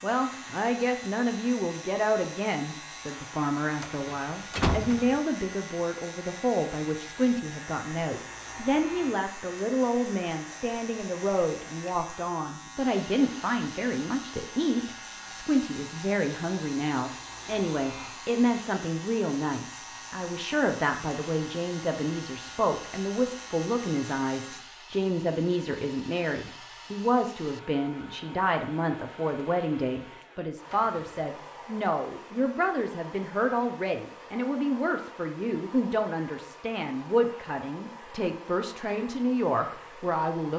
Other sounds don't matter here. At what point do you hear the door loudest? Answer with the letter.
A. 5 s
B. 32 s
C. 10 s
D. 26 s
A.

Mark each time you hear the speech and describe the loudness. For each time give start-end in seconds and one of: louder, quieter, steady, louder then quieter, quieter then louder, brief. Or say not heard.
0.0-40.5 steady.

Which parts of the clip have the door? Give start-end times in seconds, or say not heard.
3.8-5.2, 30.6-31.1.